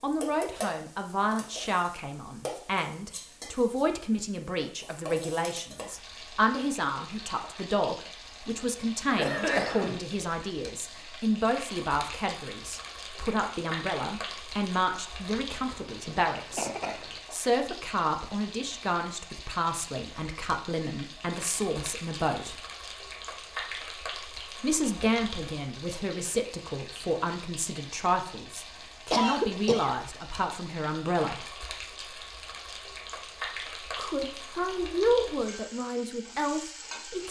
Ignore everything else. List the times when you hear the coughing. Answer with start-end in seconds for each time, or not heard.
9.2-10.0, 15.7-17.2, 29.1-29.9.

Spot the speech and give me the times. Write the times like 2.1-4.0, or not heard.
0.0-16.7, 17.3-22.6, 24.6-31.4, 34.0-37.2.